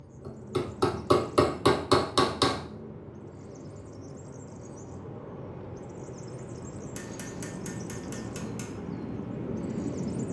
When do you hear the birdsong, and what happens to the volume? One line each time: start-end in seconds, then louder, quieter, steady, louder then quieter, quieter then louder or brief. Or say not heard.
0.0-10.2 louder.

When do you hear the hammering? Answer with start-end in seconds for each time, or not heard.
0.2-2.6, 7.0-8.8.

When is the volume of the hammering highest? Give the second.
2 s.